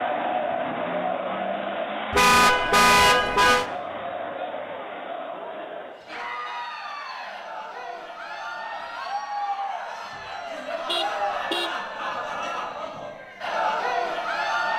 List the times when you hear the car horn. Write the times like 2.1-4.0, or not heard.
2.1-3.6, 10.8-11.7.